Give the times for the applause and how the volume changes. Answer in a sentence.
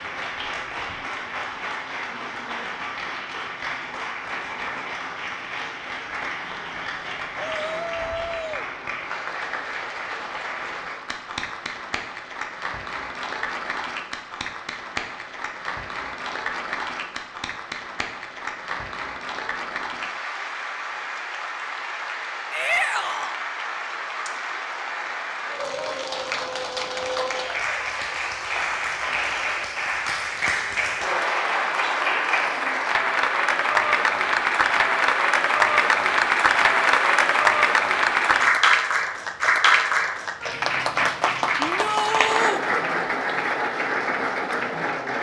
You can hear the applause from 0.0 to 45.1 s, getting louder.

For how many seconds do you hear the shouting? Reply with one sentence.
The shouting can be heard for 3 seconds in total.